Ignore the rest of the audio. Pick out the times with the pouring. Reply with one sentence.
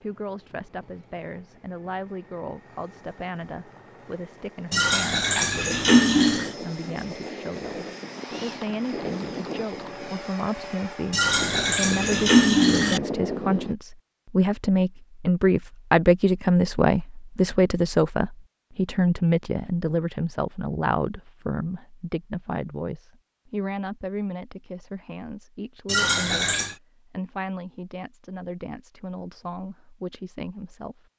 The pouring can be heard from 4.7 to 6.5 s, from 11.1 to 13.0 s and from 25.9 to 26.8 s.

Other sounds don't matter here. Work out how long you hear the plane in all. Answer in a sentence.
You can hear the plane for 14 seconds altogether.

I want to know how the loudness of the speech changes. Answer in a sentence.
The loudness of the speech goes up, then down.